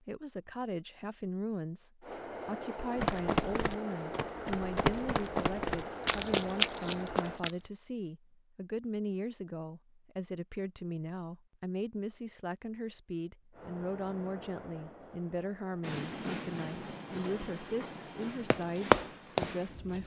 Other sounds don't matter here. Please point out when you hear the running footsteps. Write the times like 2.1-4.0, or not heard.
3.0-7.5, 18.5-20.0.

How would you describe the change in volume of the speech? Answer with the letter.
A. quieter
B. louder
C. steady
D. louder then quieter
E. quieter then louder
C.